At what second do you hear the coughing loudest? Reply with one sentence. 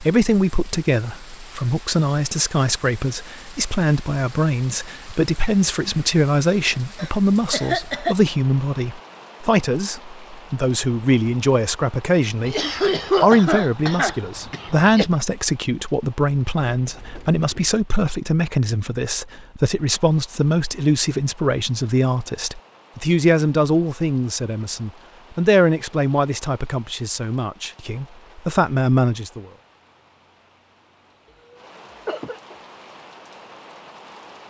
The volume of the coughing peaks at 13 seconds.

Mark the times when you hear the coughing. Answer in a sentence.
You can hear the coughing from 7.0 to 8.2 s, from 12.4 to 15.1 s and from 31.5 to 32.5 s.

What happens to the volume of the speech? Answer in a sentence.
The volume of the speech stays about the same.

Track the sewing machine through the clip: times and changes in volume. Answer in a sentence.
You can't hear the sewing machine here.